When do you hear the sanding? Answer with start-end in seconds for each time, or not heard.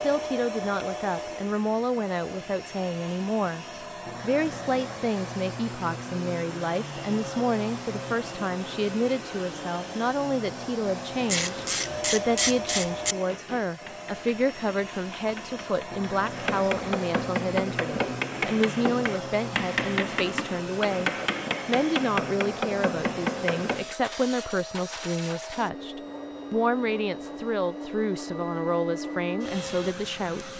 not heard.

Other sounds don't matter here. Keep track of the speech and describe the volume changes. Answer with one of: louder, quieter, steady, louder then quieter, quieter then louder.
steady.